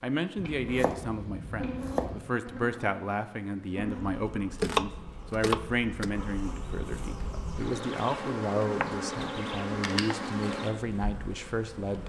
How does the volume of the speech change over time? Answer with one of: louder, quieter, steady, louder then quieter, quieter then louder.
steady.